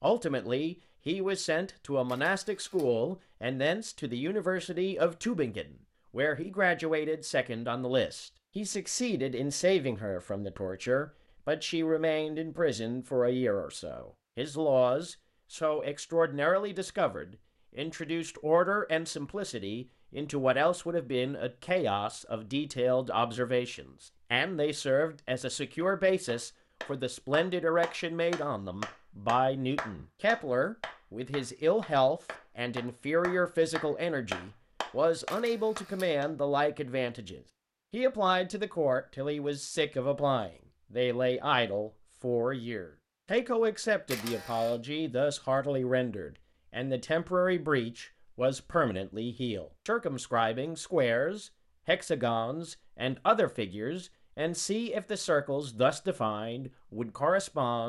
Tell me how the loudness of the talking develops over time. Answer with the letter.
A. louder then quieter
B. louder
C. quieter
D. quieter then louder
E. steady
E.